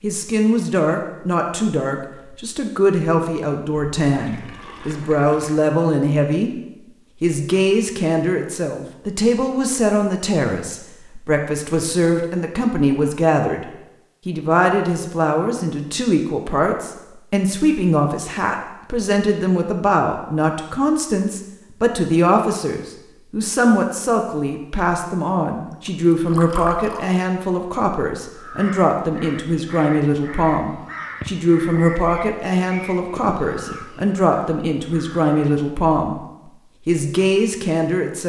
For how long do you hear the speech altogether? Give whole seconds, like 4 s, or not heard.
37 s.